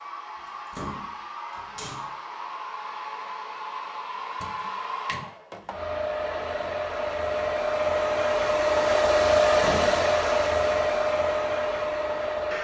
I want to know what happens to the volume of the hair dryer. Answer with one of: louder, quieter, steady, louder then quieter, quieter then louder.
louder.